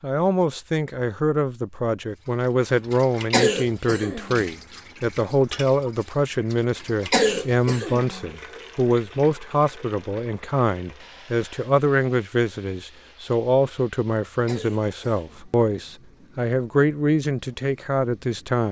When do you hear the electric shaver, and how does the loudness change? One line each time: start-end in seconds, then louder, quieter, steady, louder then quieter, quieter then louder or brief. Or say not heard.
not heard.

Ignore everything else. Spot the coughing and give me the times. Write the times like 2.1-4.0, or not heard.
3.3-4.5, 7.1-8.2, 14.4-15.6.